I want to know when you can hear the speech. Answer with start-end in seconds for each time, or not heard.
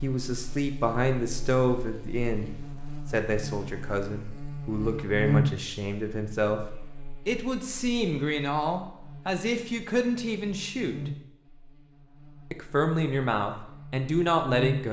0.0-6.6, 7.2-11.1, 12.5-14.8.